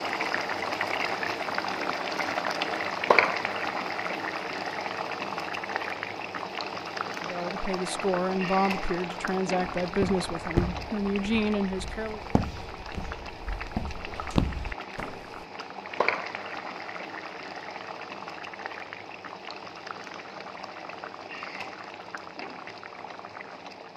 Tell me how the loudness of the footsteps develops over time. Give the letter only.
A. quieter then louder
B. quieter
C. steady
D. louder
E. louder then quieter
A.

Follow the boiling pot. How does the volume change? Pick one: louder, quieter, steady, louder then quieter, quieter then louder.
quieter.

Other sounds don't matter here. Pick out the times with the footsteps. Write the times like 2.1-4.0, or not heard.
9.8-15.2.